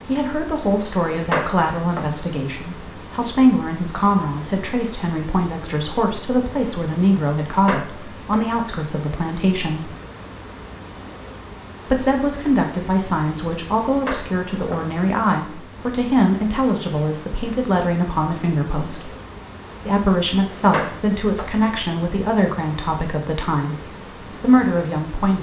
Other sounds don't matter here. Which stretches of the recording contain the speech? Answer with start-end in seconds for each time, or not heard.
0.1-9.9, 11.8-19.1, 19.9-25.3.